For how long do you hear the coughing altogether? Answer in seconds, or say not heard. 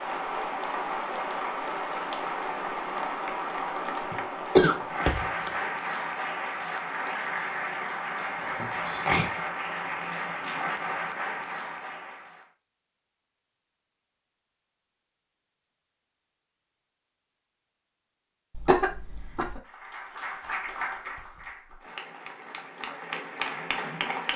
3 s.